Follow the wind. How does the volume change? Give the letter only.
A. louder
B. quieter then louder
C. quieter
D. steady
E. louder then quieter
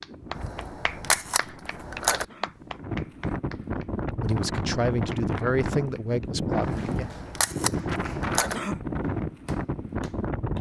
A.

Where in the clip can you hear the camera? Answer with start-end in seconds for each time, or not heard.
0.3-2.2, 6.7-8.6.